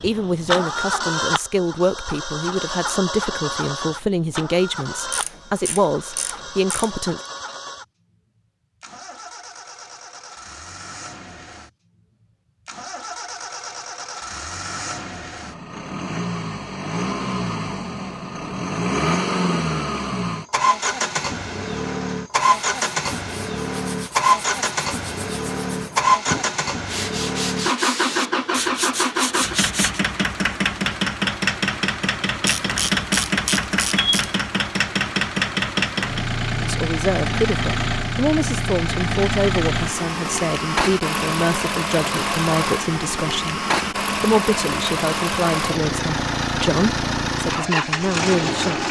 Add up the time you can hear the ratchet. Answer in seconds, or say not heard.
4 s.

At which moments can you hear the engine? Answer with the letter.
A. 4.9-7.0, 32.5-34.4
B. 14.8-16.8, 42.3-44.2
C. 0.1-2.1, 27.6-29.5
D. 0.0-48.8
D.